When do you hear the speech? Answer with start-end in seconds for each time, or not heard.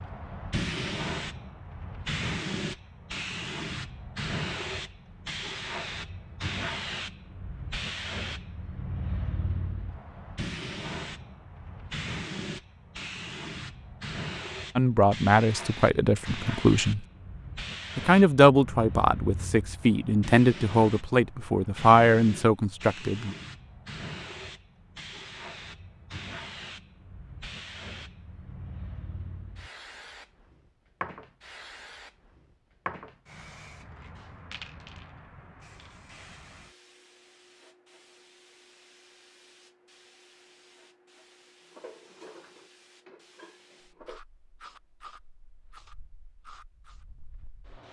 14.8-17.1, 17.9-23.4.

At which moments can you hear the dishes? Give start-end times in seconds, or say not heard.
41.6-44.2.